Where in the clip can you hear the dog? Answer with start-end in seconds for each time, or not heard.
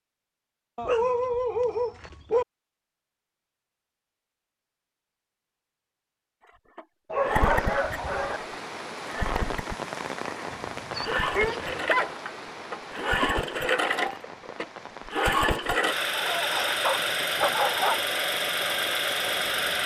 0.8-2.5, 7.1-8.4, 10.5-12.2, 16.1-18.0.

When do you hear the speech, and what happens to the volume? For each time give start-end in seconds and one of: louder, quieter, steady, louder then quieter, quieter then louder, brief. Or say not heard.
not heard.